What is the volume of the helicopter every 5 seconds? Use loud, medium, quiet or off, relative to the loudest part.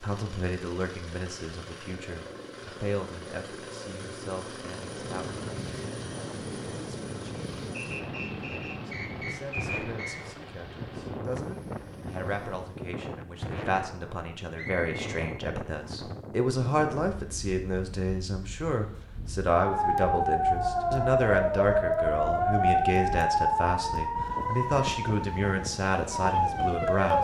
loud, loud, medium, off, off, off.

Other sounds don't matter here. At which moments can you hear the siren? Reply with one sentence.
You can hear the siren from 19.6 to 27.1 s.